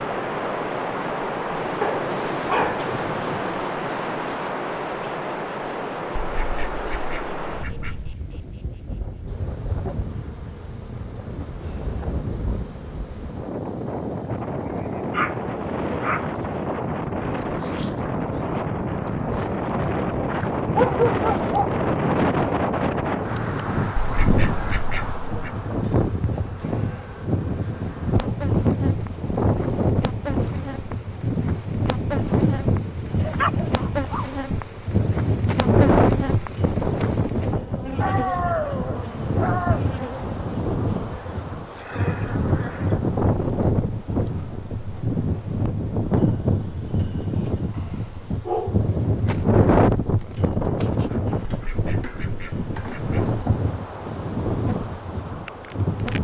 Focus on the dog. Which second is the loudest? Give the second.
21 s.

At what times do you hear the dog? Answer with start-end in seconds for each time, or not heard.
1.8-2.9, 15.1-16.2, 20.8-21.7, 33.1-34.4, 38.0-39.9, 47.8-49.4.